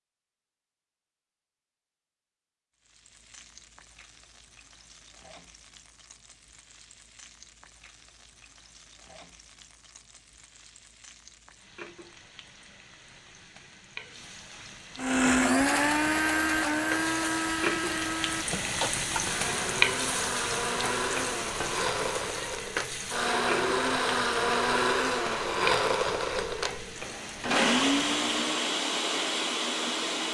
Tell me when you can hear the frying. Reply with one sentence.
You can hear the frying from 2.8 to 28.5 s.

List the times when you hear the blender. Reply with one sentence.
The blender can be heard from 14.9 to 30.2 s.